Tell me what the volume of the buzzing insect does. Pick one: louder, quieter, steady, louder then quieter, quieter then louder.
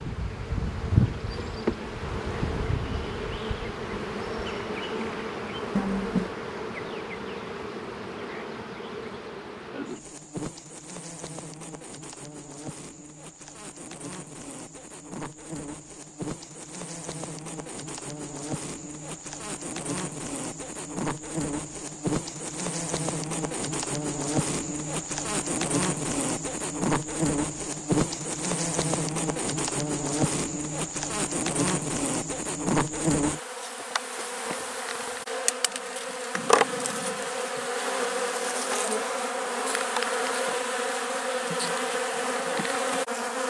quieter then louder.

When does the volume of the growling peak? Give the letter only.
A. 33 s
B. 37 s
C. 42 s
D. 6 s
D.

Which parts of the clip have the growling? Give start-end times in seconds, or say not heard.
5.8-6.3, 35.6-37.6.